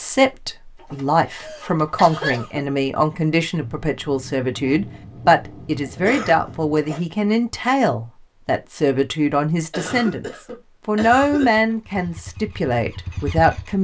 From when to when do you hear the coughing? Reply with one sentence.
You can hear the coughing from 0.9 to 2.6 s, from 6.0 to 7.0 s and from 9.7 to 11.8 s.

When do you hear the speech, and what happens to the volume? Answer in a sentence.
You can hear the speech from 0.0 to 13.8 s, at a steady volume.